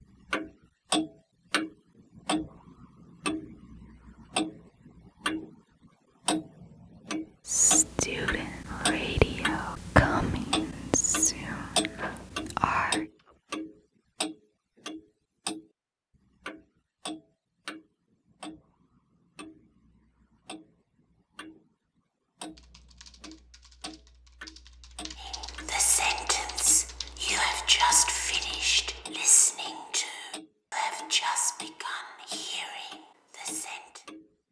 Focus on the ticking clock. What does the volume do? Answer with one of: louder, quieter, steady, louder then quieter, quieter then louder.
quieter.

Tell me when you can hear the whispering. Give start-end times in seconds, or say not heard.
7.5-13.1, 25.2-34.0.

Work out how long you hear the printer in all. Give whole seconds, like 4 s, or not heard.
not heard.